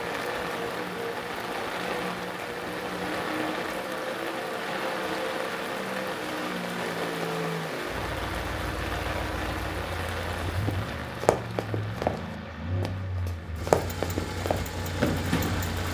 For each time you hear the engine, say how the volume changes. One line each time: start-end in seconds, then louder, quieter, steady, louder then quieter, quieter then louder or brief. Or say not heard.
0.0-15.8 steady.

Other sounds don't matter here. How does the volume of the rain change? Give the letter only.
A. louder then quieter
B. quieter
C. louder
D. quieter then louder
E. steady
B.